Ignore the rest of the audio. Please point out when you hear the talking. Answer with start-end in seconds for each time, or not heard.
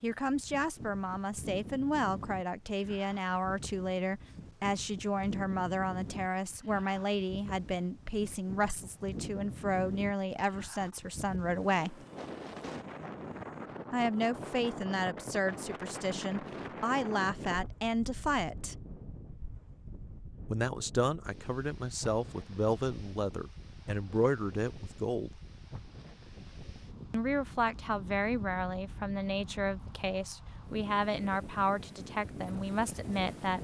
0.0-12.1, 13.9-18.9, 20.5-25.4, 27.1-33.5.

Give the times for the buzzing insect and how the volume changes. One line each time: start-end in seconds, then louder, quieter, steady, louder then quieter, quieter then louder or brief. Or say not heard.
not heard.